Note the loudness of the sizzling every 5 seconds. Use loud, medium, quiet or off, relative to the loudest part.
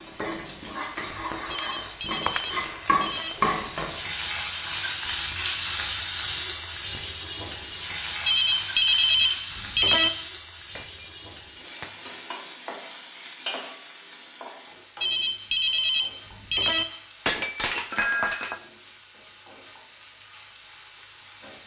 loud, loud, medium, quiet, quiet.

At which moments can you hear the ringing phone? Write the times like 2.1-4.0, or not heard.
1.5-3.4, 8.2-10.1, 15.0-16.9.